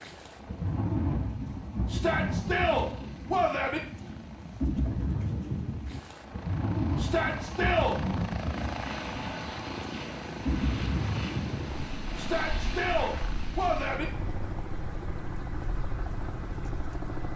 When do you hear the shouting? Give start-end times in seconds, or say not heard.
1.9-3.8, 7.0-8.0, 12.2-14.1.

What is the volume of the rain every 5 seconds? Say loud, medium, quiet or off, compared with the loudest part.
loud, loud, loud, quiet.